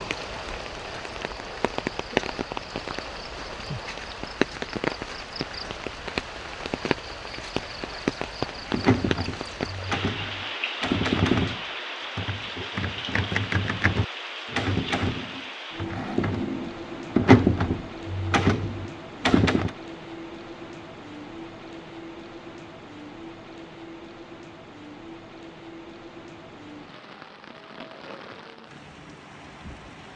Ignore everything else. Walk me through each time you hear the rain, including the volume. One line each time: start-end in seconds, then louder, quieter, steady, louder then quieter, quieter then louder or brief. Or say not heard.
0.0-30.1 quieter.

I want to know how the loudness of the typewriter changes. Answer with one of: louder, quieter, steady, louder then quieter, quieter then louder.
louder.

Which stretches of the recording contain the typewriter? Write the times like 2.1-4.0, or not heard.
8.7-19.7.